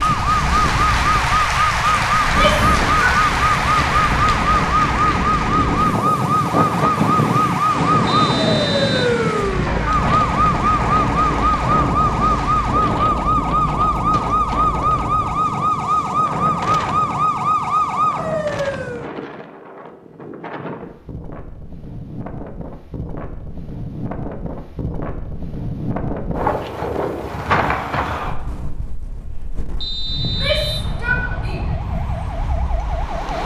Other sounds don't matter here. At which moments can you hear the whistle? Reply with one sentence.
You can hear the whistle from 8.1 to 9.1 s and from 29.8 to 30.9 s.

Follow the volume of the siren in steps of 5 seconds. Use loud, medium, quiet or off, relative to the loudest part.
loud, loud, loud, loud, off, off, quiet.